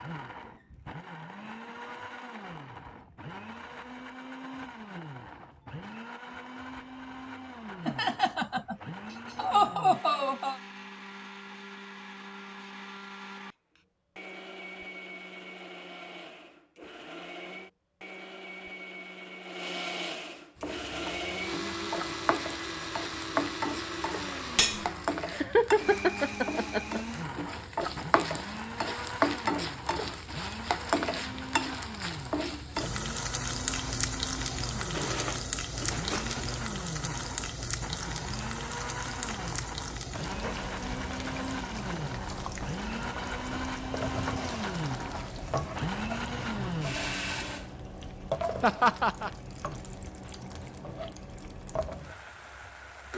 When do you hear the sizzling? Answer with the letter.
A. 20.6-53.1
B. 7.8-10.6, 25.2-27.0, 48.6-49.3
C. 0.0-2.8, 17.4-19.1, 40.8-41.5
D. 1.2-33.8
A.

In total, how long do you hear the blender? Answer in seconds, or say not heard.
48 s.